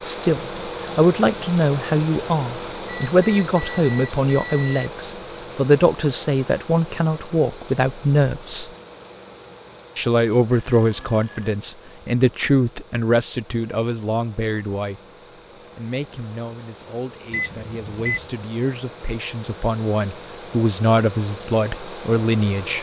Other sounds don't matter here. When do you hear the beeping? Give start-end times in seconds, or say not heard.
2.9-4.9, 10.5-11.6, 17.3-18.3.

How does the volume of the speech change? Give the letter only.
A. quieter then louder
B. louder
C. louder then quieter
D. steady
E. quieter
A.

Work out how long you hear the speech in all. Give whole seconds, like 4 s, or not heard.
21 s.